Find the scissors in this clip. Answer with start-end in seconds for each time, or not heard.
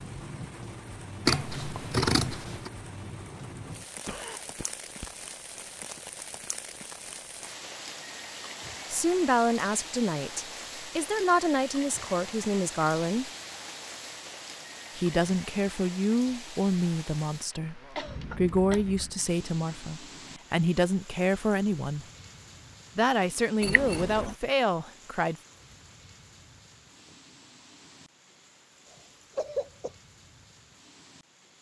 1.2-2.7, 18.1-19.1, 23.6-24.4.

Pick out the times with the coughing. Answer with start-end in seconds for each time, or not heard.
4.0-5.1, 17.9-19.1, 28.9-29.9.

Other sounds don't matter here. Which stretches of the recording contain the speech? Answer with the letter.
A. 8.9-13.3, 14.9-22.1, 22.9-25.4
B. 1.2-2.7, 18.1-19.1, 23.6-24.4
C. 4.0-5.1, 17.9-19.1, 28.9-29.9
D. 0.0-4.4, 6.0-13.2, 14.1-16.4
A.